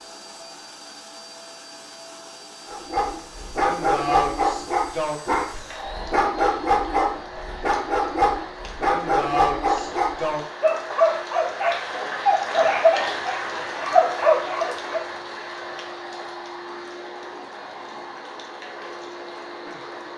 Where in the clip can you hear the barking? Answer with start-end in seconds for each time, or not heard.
2.6-15.1.